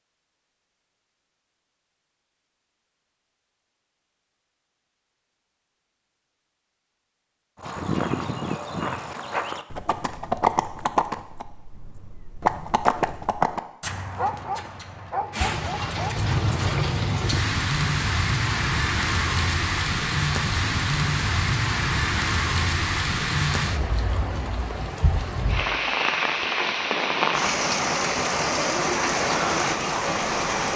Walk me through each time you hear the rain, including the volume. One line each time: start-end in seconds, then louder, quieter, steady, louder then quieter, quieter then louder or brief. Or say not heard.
15.3-30.7 steady.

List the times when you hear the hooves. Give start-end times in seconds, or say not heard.
7.6-16.8.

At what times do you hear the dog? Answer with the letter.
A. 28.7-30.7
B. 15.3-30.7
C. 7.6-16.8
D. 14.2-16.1
D.